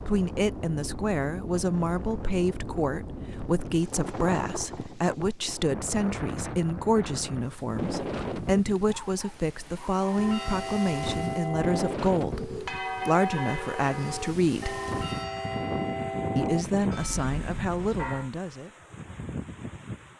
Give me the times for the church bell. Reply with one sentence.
The church bell can be heard from 10.0 to 18.3 s.